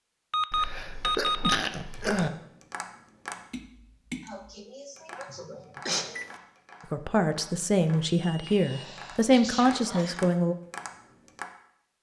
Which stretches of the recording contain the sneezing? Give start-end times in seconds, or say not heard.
0.5-2.3, 4.2-6.2, 8.4-10.3.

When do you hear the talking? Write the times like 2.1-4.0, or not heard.
6.9-10.6.